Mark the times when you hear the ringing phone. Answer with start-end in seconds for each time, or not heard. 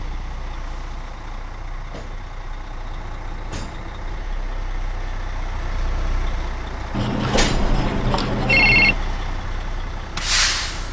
6.9-8.9.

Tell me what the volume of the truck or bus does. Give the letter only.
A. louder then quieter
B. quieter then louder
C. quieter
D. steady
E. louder
E.